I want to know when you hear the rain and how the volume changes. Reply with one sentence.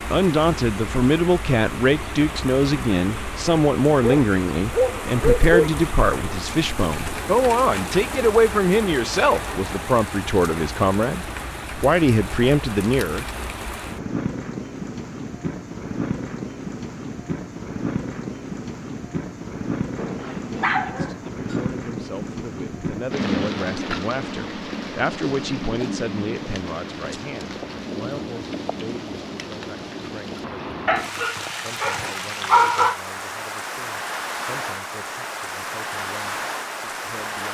You can hear the rain from 0.0 to 37.4 s, at a steady volume.